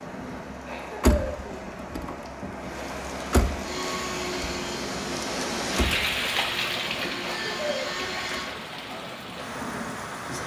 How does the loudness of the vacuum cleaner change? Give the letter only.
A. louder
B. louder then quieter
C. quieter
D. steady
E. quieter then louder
E.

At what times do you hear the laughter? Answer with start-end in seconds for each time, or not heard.
0.7-1.8, 7.2-8.2.